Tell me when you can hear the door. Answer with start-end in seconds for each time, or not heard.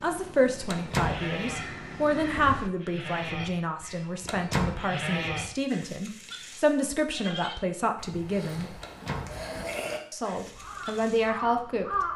0.7-1.2, 4.2-4.8, 8.8-9.4.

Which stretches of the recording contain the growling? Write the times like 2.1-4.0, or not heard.
not heard.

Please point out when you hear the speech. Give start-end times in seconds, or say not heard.
0.0-8.7, 10.1-12.1.